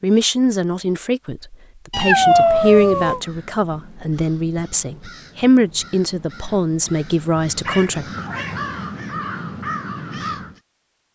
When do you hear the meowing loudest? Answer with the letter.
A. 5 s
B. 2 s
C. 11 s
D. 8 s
B.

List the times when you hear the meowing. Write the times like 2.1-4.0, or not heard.
1.9-3.2, 7.5-8.7.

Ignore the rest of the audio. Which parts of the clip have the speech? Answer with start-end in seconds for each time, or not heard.
0.0-8.1.